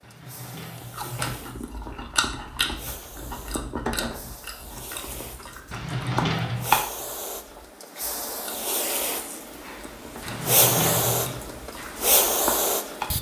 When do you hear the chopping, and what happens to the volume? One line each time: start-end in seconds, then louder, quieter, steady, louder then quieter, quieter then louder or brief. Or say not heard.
not heard.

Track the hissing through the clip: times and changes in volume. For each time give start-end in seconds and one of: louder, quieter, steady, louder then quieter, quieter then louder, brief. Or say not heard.
0.0-13.1 louder.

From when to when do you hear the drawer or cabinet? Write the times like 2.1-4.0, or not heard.
0.0-1.4, 5.7-6.8, 10.2-11.4.